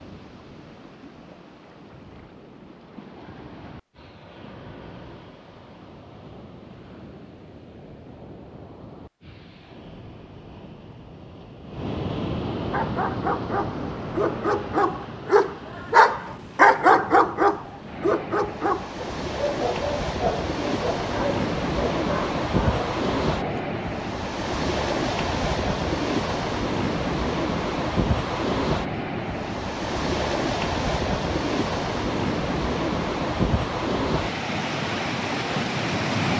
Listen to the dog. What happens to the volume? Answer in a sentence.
The volume of the dog goes up, then down.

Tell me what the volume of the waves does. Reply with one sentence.
The volume of the waves goes up.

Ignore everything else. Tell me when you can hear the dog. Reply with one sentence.
You can hear the dog from 12.7 to 23.8 s.